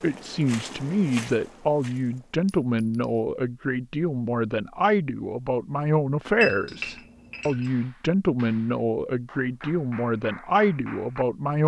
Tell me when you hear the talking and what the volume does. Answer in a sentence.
You can hear the talking from 0.0 to 11.6 s, at a steady volume.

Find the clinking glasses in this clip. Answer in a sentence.
The clinking glasses can be heard from 2.5 to 3.2 s and from 6.3 to 7.7 s.